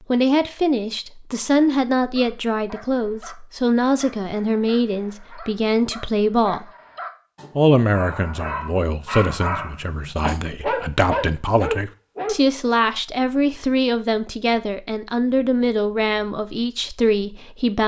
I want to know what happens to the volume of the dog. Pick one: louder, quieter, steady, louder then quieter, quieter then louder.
louder.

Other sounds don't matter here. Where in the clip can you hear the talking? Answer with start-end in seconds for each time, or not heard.
0.1-6.7, 7.5-17.8.